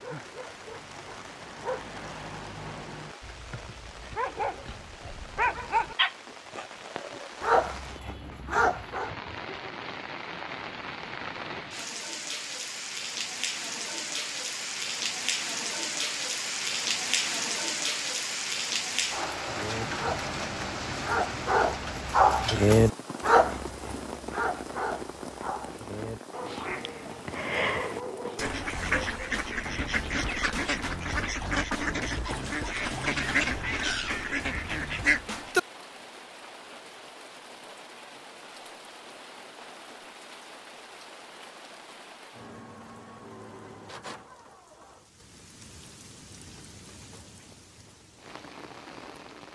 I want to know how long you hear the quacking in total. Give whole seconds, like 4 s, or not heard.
9 s.